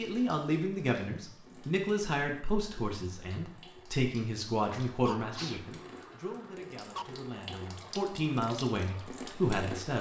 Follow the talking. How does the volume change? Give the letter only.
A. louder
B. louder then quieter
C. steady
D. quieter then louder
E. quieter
D.